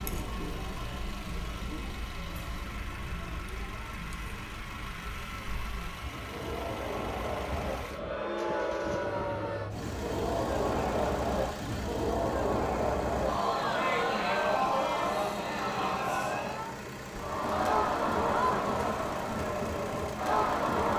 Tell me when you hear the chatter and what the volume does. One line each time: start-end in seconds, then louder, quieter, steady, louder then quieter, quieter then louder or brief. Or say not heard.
0.0-20.9 louder.